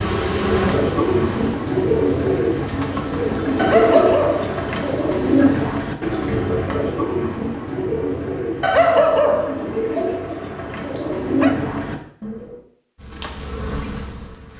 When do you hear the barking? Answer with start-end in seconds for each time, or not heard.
3.5-5.4, 8.6-11.6.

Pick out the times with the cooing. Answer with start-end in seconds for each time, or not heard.
0.3-12.6.